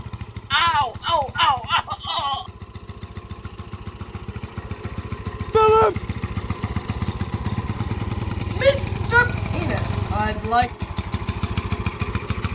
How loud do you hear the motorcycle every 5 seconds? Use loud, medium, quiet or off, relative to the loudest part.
medium, loud, loud.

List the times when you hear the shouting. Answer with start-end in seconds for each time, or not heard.
0.5-2.5, 5.5-6.0, 8.6-10.7.